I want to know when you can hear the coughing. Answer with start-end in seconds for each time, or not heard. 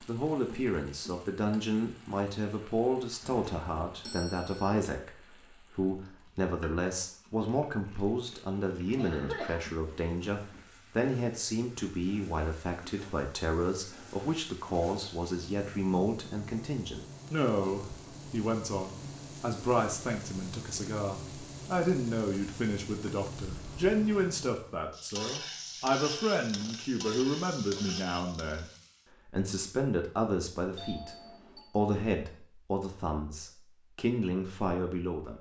8.9-9.6.